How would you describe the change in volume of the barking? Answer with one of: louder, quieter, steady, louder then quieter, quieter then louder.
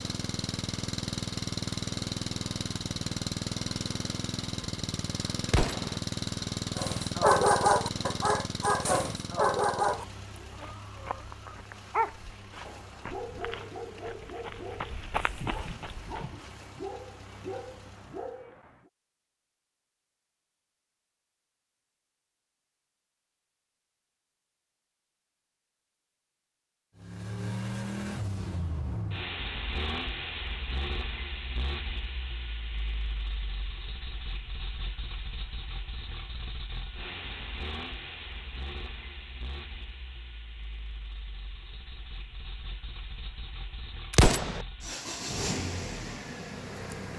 quieter.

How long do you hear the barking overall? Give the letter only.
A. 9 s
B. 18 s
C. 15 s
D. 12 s
D.